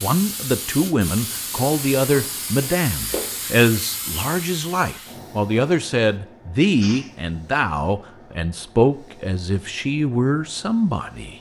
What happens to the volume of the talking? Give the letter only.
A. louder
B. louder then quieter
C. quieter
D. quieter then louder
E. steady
E.